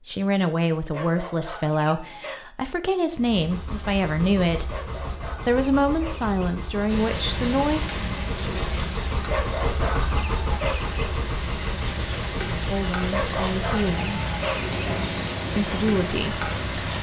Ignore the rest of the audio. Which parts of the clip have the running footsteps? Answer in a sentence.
You can't hear the running footsteps here.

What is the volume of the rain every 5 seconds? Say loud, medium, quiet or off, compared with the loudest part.
off, loud, loud, loud.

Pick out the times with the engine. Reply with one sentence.
The engine can be heard from 3.1 to 16.9 s.